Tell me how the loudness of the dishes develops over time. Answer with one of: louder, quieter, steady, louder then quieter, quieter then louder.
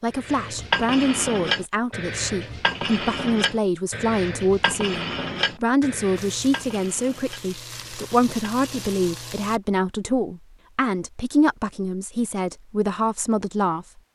quieter.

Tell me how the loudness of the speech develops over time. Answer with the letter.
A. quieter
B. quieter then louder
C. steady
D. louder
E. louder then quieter
C.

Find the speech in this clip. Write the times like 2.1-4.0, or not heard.
0.0-13.8.